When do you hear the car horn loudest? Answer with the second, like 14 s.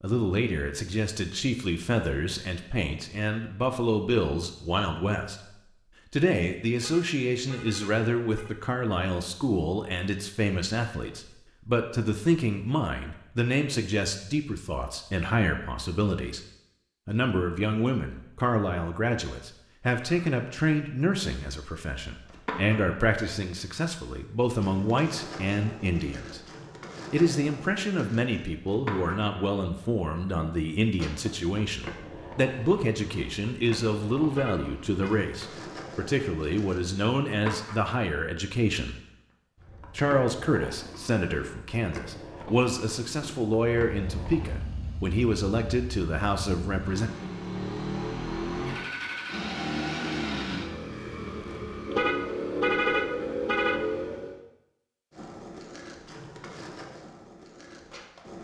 53 s.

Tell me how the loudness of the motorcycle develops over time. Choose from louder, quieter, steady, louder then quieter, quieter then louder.
louder.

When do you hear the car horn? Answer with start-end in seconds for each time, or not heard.
6.8-8.6, 34.3-35.2, 51.9-53.8.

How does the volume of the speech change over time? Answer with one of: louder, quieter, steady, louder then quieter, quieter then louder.
steady.